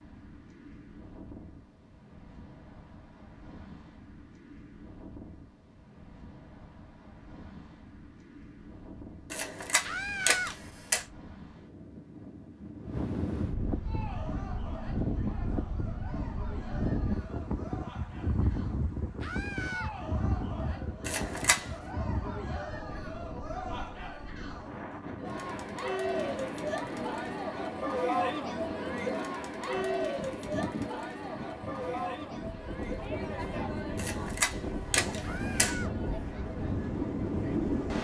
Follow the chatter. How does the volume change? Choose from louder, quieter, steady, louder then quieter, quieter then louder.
louder then quieter.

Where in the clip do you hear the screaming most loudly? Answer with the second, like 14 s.
10 s.